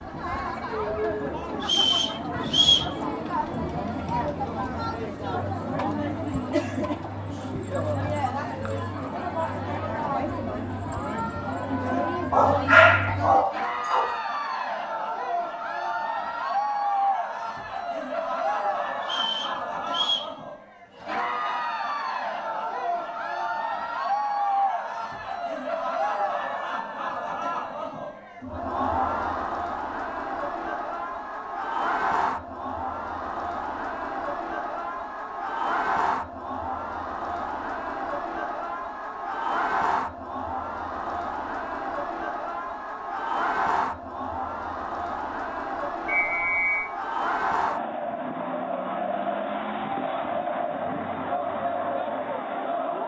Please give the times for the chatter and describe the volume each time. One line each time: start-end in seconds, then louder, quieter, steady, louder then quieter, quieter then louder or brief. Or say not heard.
0.0-53.0 steady.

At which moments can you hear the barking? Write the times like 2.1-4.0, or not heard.
12.3-14.2.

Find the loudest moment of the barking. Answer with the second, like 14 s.
13 s.